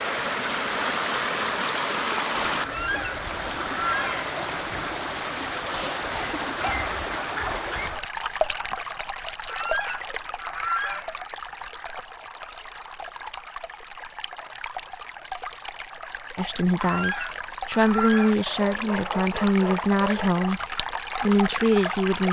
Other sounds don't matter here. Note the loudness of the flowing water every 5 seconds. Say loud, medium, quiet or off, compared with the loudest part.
loud, loud, medium, medium, loud.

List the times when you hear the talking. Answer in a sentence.
You can hear the talking from 16.4 to 20.6 s and from 21.2 to 22.2 s.